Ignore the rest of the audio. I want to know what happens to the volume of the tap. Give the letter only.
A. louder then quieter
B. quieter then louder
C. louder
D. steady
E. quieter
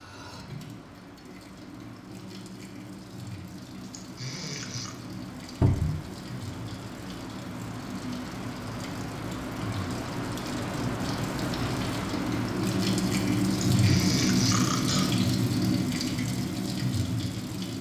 C.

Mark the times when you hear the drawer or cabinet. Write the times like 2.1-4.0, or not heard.
5.6-6.0.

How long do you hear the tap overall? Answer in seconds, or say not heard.
18 s.